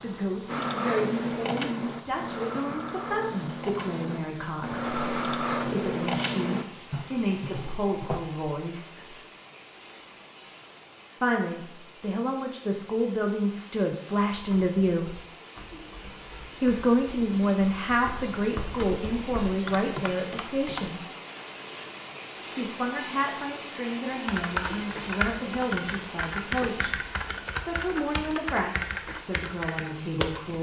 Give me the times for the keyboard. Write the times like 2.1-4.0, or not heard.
0.5-8.2, 14.3-20.9, 24.2-30.5.